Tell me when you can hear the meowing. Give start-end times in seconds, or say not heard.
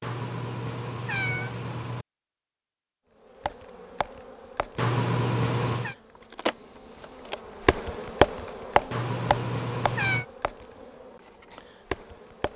0.0-2.0, 4.8-6.0, 8.9-10.2.